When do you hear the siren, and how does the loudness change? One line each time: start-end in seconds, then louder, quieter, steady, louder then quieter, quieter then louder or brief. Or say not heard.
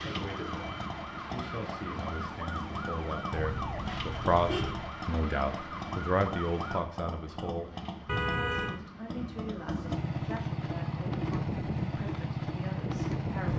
0.0-9.9 quieter.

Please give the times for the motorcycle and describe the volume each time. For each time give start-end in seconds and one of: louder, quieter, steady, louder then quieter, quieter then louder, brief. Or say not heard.
0.0-13.5 louder.